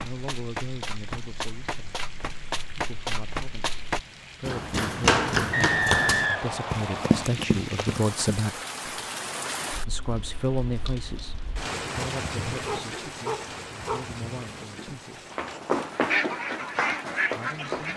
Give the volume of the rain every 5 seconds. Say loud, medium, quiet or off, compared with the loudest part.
medium, loud, loud, medium.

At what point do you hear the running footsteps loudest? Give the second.
5 s.